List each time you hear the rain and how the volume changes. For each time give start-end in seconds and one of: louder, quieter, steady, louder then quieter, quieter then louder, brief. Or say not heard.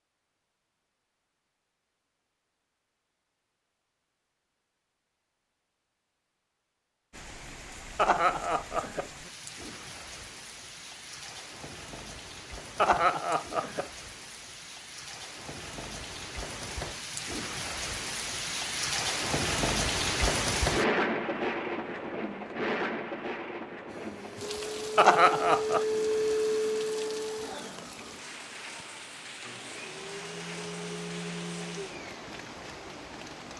7.1-33.5 louder then quieter.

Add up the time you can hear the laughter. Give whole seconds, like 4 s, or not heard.
3 s.